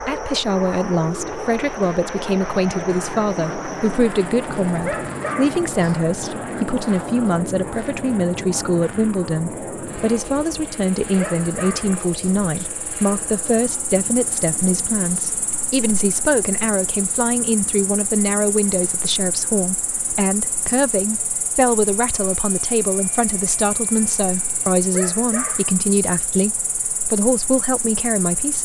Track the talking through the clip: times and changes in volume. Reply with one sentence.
You can hear the talking from 0.0 to 28.6 s, at a steady volume.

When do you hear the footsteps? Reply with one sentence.
You can't hear the footsteps here.